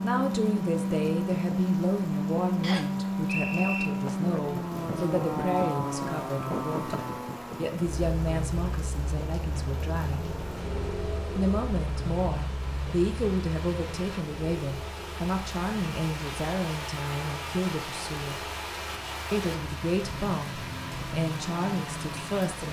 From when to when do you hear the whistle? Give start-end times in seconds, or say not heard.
2.6-3.9.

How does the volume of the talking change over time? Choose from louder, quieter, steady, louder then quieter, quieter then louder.
steady.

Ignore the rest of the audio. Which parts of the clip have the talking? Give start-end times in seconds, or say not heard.
0.0-10.2, 11.3-18.4, 19.3-22.6.